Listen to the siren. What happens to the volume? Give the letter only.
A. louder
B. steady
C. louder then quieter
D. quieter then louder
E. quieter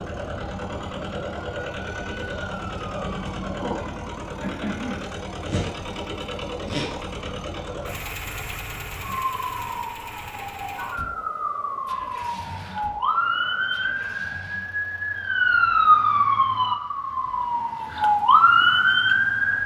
A.